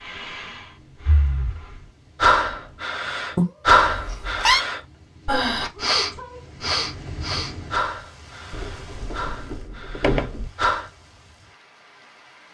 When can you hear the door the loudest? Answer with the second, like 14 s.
10 s.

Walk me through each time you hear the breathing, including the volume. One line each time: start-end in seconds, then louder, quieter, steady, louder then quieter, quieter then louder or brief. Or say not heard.
0.1-10.9 quieter.